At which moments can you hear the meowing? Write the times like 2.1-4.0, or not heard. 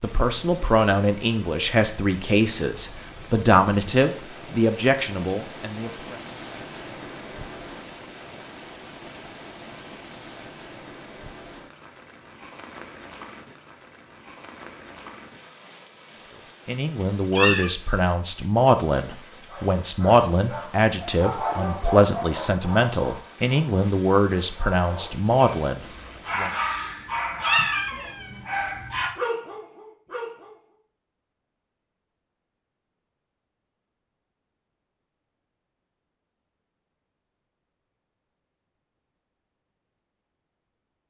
17.0-17.7, 27.1-28.7.